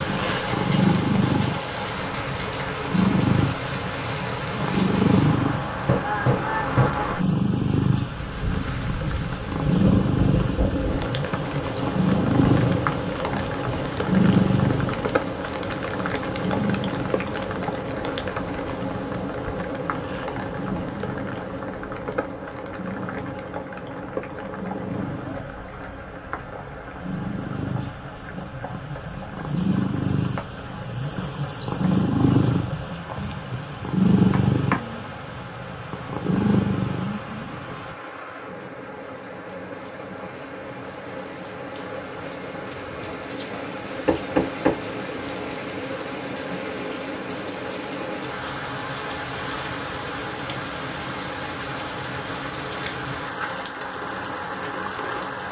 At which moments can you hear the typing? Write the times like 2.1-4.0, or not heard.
not heard.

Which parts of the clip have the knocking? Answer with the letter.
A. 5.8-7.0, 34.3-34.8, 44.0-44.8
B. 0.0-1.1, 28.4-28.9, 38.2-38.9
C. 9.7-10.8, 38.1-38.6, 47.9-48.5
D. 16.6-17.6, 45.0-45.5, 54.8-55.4
A.